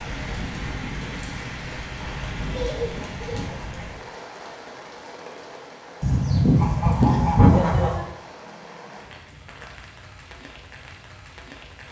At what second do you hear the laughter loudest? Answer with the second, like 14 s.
3 s.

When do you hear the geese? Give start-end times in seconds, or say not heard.
2.1-4.0, 6.0-8.0.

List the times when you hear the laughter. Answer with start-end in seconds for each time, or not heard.
2.5-3.5, 7.5-8.1.